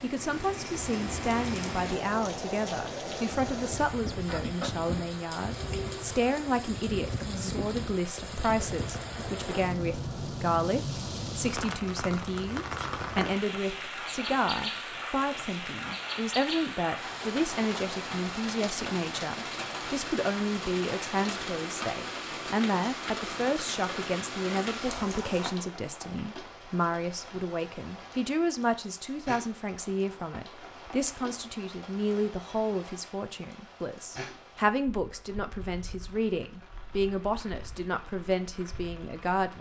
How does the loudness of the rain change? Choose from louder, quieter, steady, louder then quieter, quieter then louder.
quieter.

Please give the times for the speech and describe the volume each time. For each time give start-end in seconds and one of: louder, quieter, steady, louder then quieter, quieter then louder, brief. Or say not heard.
0.0-39.5 steady.